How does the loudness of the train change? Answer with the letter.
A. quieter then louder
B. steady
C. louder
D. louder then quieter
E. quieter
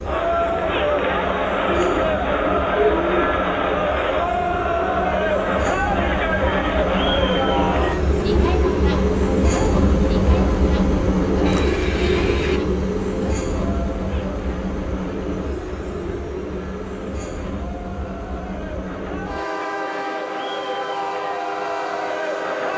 D.